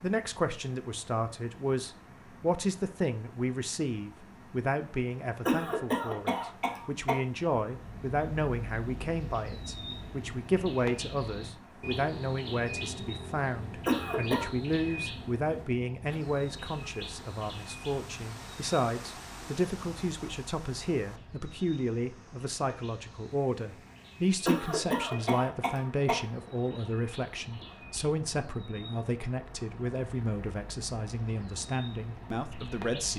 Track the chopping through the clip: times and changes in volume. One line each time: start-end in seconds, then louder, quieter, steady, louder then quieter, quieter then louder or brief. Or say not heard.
not heard.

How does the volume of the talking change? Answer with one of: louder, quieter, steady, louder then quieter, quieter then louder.
steady.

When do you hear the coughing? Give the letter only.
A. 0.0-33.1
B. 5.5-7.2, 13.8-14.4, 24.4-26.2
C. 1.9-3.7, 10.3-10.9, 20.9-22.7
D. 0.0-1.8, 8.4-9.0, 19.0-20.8
B.